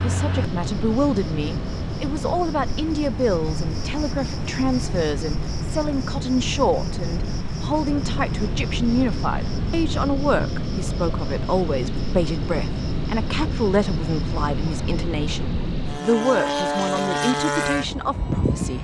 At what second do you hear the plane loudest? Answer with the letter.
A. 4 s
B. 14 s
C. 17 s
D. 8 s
C.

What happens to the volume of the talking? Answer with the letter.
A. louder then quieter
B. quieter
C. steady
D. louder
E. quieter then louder
C.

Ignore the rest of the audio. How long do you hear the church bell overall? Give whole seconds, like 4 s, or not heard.
not heard.